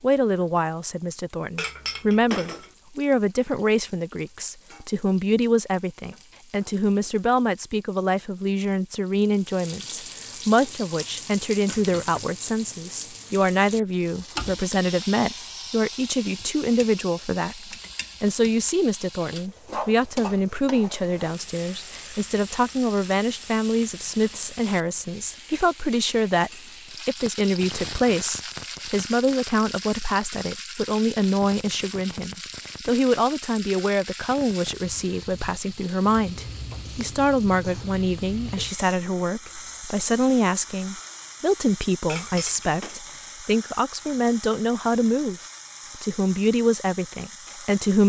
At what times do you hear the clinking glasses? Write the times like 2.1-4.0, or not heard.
1.6-2.7, 42.0-43.0.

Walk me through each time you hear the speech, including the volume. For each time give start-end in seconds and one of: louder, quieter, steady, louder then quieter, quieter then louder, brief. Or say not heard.
0.0-48.0 steady.